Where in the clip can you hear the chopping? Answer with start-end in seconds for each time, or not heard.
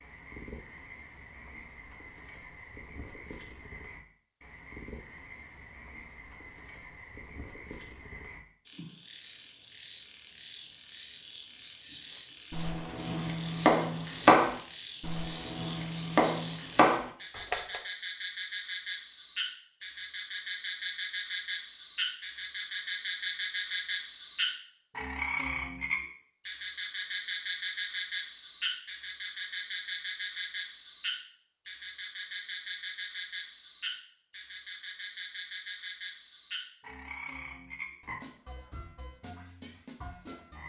12.5-17.8.